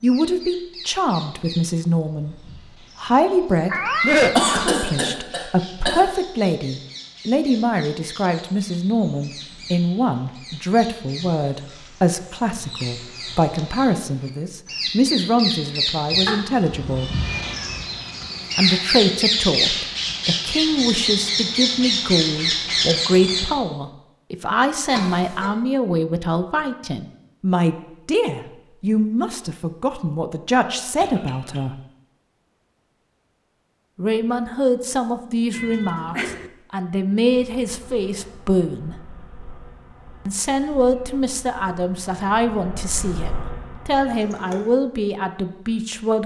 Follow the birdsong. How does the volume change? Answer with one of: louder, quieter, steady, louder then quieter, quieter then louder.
louder.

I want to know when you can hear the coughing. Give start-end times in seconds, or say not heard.
4.3-6.0, 24.9-25.5, 30.9-31.6.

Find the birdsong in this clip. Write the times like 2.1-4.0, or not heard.
0.0-23.6.